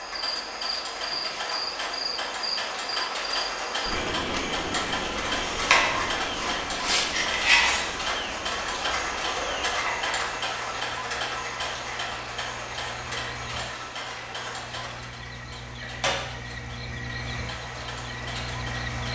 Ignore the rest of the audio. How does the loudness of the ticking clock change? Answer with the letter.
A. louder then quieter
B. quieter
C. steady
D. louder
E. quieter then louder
A.